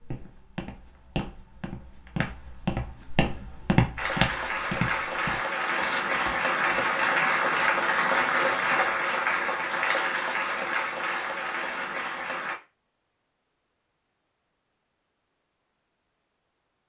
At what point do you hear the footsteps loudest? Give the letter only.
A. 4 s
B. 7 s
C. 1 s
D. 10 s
A.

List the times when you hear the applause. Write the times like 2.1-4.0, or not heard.
4.0-12.6.